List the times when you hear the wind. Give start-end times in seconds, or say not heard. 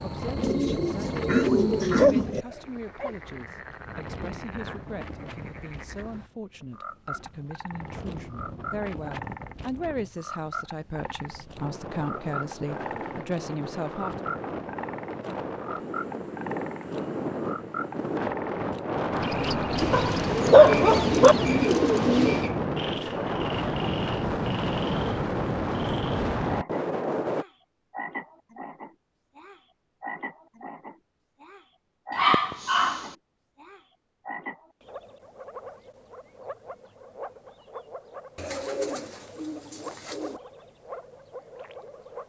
0.0-27.4.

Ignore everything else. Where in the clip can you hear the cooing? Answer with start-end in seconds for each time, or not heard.
0.4-2.5, 19.8-22.5, 38.4-40.4.